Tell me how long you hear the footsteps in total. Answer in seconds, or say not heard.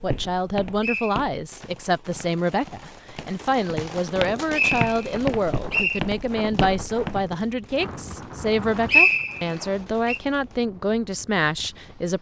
7 s.